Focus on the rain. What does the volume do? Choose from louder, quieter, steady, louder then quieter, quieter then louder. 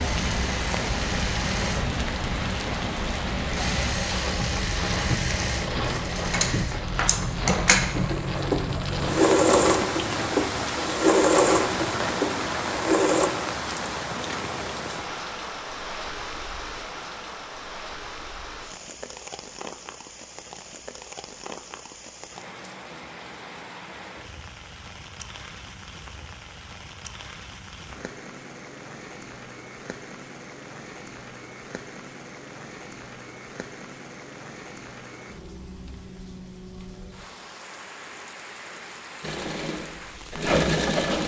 quieter.